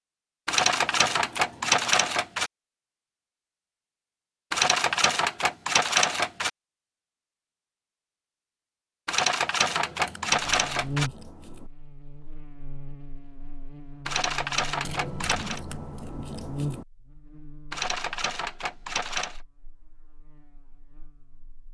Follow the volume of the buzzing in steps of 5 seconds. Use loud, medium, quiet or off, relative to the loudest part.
off, off, loud, loud, quiet.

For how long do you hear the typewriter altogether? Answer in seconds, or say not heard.
9 s.